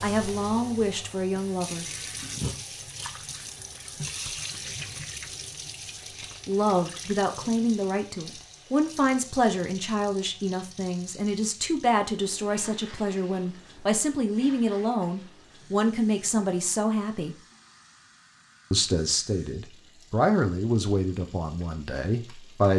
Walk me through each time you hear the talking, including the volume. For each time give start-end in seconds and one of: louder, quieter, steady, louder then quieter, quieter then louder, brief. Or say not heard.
0.0-1.9 brief
6.5-17.4 steady
18.7-22.7 louder then quieter.